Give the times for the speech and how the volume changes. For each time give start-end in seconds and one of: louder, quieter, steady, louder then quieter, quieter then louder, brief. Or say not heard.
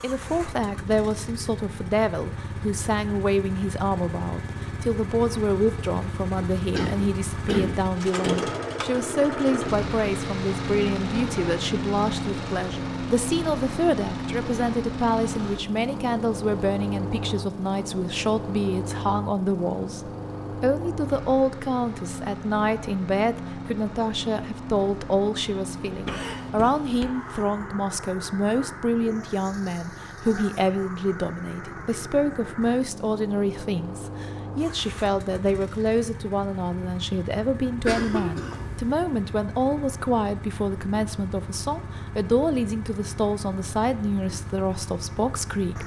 0.0-45.8 steady.